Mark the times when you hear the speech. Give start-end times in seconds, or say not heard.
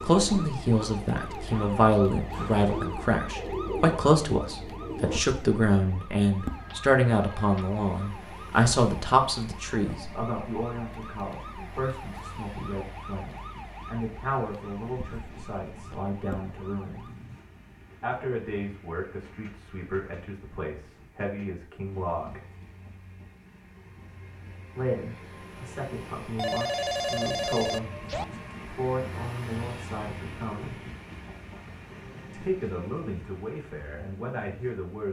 0.0-17.1, 18.0-22.4, 24.8-30.8, 32.3-35.0.